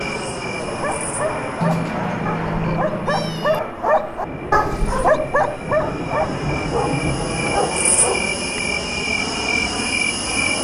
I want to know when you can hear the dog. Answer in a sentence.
You can hear the dog from 0.7 to 8.2 s.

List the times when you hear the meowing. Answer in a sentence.
You can hear the meowing from 1.6 to 3.6 s.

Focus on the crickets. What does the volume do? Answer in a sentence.
The volume of the crickets goes down, then up.